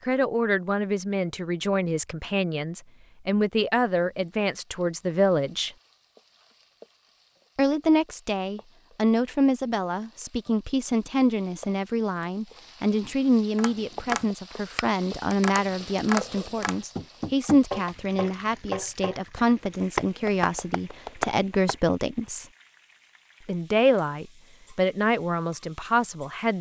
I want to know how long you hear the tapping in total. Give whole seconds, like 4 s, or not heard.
8 s.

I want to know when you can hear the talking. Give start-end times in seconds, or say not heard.
0.1-5.7, 7.5-22.4, 23.4-26.5.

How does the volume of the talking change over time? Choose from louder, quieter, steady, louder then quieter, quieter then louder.
steady.